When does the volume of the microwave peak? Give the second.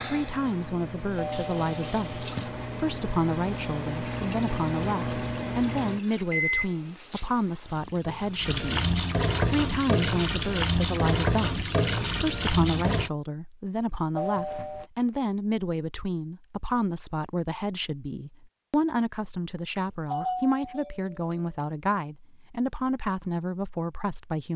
6 s.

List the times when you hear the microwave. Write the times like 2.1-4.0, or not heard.
0.0-7.0.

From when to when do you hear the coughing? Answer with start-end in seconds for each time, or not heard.
not heard.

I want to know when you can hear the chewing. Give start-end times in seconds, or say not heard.
not heard.